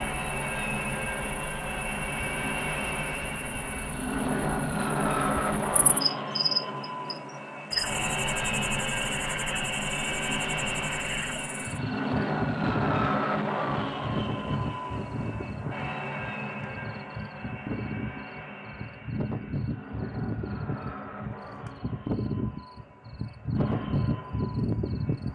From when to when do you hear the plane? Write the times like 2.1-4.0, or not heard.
0.0-25.3.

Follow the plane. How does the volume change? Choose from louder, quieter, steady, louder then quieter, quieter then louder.
quieter.